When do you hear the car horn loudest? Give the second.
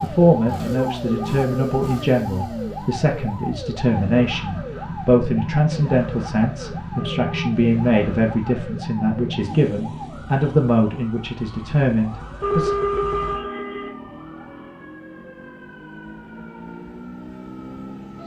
13 s.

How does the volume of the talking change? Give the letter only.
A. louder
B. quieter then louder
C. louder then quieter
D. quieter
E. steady
E.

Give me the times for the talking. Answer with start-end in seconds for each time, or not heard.
0.0-12.8.